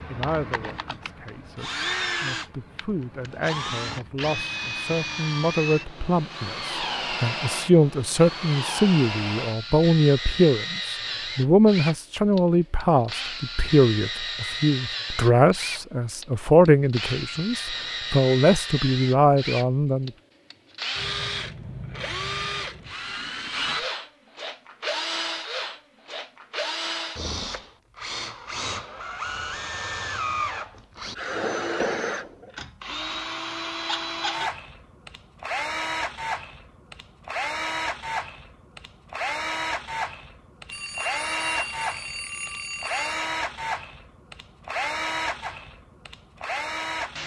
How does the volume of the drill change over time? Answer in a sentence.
The loudness of the drill stays about the same.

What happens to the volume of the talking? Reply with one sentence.
The volume of the talking goes up.